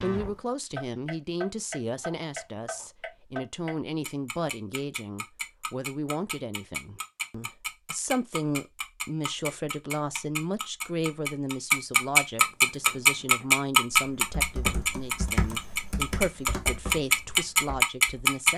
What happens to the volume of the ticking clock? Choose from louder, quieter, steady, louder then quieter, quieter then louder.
louder.